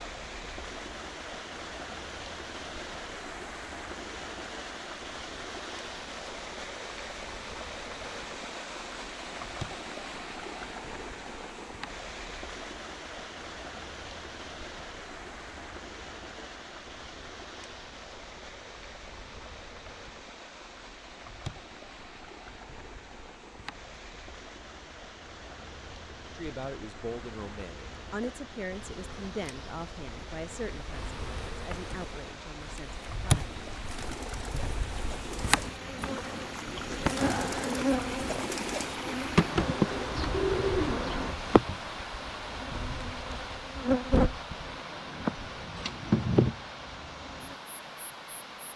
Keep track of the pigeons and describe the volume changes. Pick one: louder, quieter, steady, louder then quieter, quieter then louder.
louder.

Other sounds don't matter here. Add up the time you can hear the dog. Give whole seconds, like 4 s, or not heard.
not heard.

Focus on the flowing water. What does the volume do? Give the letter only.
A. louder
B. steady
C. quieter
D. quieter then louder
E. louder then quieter
D.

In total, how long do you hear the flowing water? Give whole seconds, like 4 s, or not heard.
49 s.